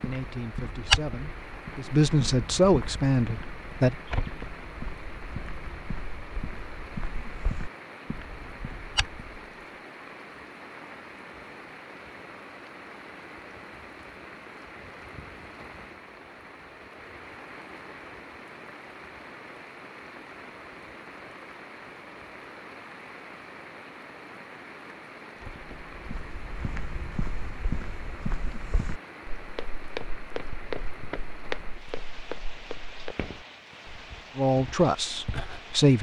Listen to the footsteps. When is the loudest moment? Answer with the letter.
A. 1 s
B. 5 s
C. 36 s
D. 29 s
A.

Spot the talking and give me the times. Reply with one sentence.
The talking can be heard from 0.0 to 4.0 s and from 34.4 to 35.9 s.